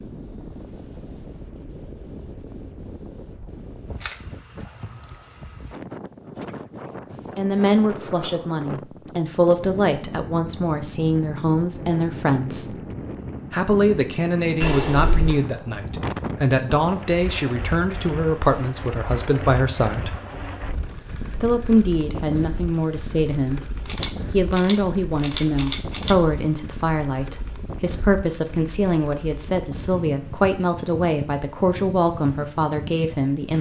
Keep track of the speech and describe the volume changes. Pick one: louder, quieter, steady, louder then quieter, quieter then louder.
steady.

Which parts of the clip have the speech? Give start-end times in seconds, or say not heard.
7.3-12.8, 13.5-20.1, 21.4-33.5.